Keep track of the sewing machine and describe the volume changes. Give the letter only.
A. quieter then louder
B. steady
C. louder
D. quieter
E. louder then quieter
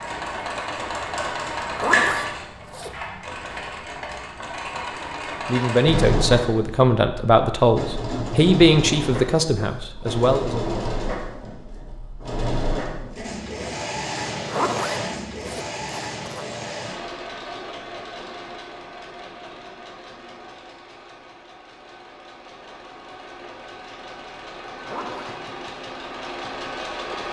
D.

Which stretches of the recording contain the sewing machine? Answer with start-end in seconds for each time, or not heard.
0.0-27.2.